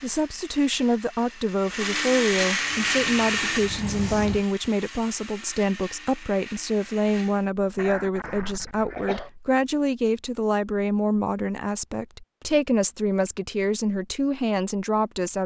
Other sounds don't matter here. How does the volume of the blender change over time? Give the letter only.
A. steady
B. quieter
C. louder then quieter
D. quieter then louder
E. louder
C.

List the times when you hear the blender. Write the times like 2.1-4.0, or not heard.
0.0-7.5.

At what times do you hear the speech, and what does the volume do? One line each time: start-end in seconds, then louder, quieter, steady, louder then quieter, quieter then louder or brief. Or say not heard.
0.0-15.4 steady.